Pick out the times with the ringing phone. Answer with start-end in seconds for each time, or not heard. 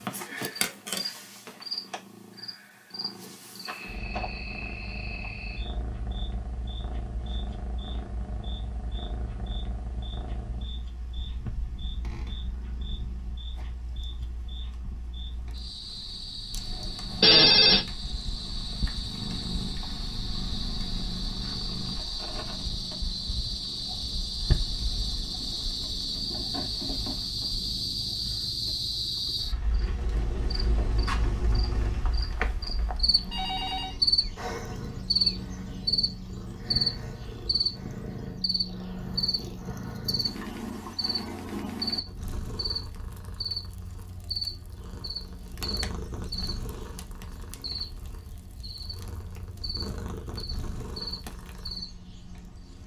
17.2-17.9, 32.4-34.0.